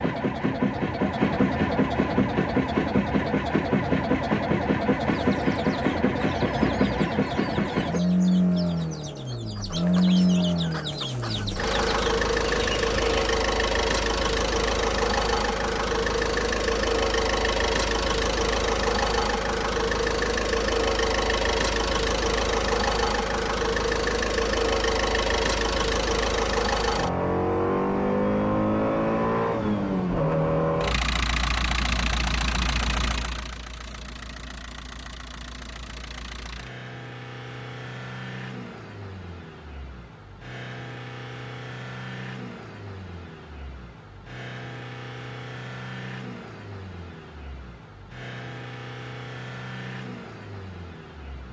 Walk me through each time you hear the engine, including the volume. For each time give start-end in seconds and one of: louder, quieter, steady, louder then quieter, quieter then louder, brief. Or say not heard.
0.0-51.4 quieter.